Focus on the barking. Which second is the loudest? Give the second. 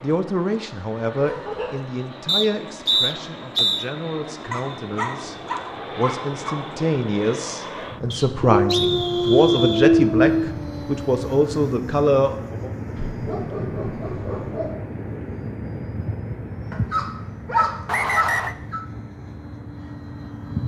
10 s.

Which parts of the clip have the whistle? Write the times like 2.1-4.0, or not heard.
2.2-3.9, 8.1-9.9, 17.9-18.6.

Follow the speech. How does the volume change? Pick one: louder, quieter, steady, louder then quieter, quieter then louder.
quieter then louder.